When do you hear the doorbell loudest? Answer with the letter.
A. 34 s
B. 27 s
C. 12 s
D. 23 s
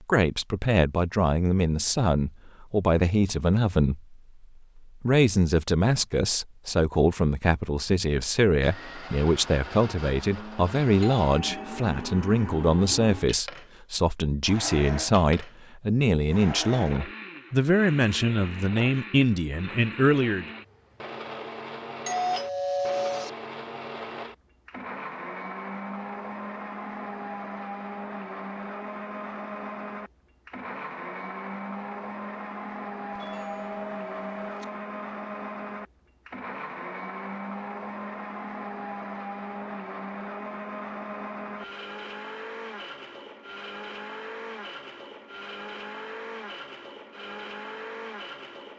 D.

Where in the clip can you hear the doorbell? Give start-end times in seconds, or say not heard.
11.0-11.8, 22.1-23.3, 33.1-34.7.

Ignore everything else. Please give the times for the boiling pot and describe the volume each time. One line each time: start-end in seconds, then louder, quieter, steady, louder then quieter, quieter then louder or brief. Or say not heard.
not heard.